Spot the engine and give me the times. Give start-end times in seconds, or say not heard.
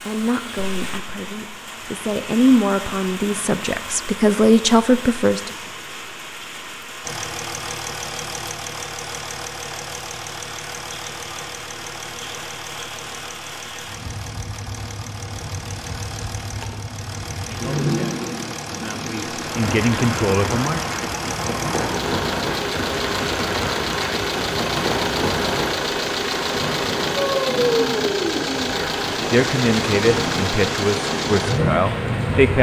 7.0-32.5.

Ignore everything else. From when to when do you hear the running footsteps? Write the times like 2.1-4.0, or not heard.
not heard.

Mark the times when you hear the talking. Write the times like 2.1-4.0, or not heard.
0.0-5.5, 17.4-20.9, 28.6-32.5.